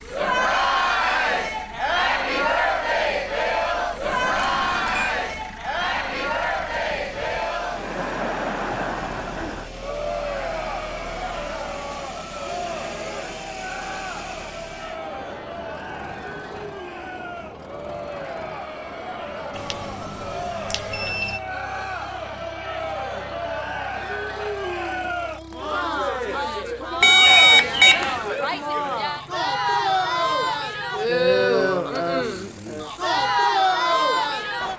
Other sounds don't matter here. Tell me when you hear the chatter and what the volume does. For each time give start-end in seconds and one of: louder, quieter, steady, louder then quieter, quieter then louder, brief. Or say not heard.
0.0-34.7 quieter then louder.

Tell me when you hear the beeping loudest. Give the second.
27 s.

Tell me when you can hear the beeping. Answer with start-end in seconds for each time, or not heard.
4.0-5.2, 19.6-21.4, 27.0-28.2.